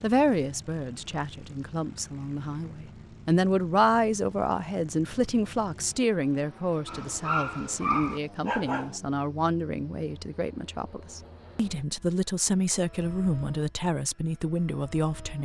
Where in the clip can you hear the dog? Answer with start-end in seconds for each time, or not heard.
6.8-9.0.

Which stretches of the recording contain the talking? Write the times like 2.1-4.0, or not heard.
0.0-15.4.